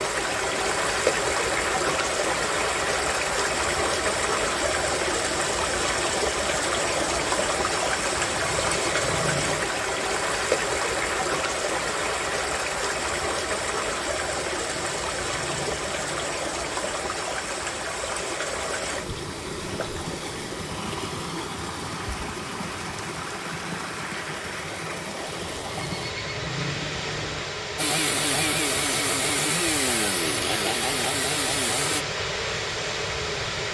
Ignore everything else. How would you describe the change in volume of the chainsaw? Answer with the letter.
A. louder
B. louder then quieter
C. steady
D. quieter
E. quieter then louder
C.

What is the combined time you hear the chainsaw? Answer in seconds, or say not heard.
4 s.